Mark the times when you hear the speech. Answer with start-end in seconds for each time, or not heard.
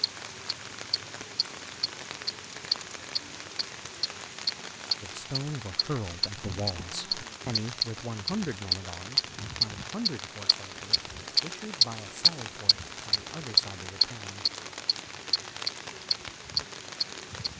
5.0-14.4.